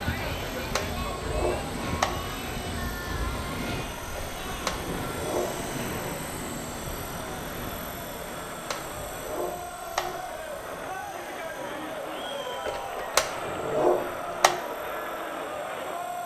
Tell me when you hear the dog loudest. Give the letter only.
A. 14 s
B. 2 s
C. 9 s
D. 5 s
A.